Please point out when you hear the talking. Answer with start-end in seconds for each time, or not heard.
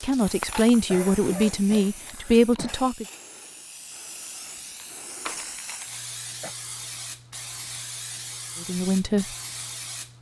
0.0-3.0, 8.6-9.2.